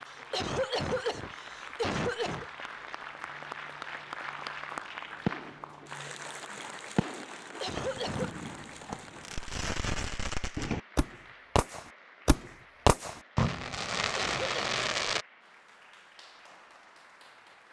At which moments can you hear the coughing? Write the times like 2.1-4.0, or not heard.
0.1-2.5, 7.4-8.3, 14.0-14.6.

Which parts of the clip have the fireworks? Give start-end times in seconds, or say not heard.
5.2-15.2.